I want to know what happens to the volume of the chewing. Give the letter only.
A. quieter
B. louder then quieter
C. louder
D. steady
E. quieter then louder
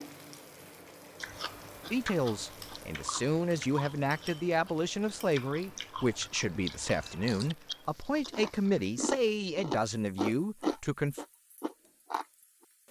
C.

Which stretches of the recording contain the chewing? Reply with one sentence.
The chewing can be heard from 1.2 to 12.2 s.